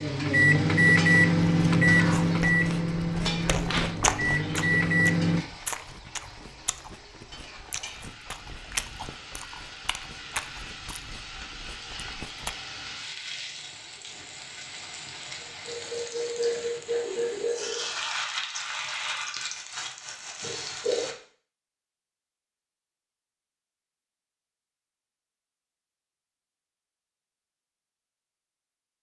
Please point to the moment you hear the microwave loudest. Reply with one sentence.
The volume of the microwave peaks at 1 second.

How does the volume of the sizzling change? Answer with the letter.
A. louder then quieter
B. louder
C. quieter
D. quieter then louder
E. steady
D.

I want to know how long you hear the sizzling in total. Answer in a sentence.
The sizzling can be heard for 21 seconds in total.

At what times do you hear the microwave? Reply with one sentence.
The microwave can be heard from 0.0 to 5.5 s.